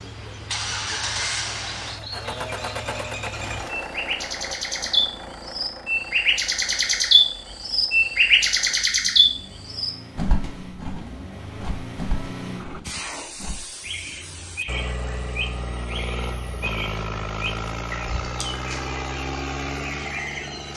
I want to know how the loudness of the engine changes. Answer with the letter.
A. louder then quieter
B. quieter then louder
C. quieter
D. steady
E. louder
B.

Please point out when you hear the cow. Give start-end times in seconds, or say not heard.
not heard.